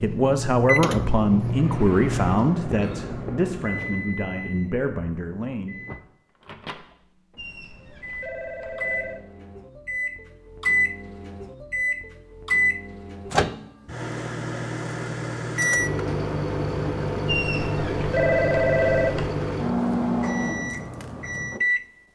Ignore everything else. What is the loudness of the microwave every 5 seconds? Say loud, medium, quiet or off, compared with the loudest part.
loud, medium, loud, loud, loud.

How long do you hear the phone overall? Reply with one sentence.
You can hear the phone for 4 seconds altogether.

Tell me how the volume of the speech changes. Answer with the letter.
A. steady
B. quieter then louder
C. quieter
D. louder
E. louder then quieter
C.